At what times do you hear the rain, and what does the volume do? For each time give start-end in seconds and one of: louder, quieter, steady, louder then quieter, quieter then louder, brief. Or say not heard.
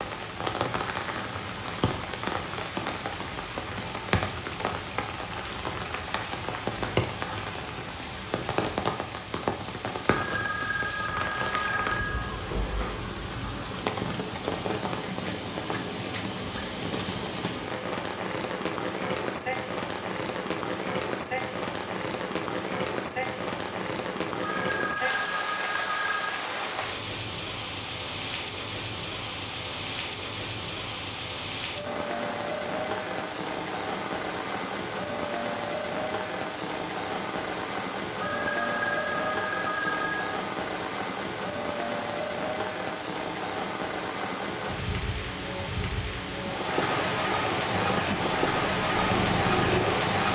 0.0-50.2 steady.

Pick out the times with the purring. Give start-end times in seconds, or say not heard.
47.5-50.2.